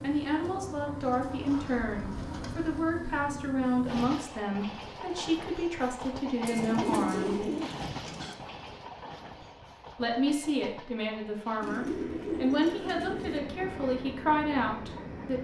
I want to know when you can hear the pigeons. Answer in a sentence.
You can hear the pigeons from 1.0 to 2.9 s, from 6.5 to 8.3 s and from 11.6 to 13.4 s.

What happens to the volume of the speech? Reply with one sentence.
The loudness of the speech stays about the same.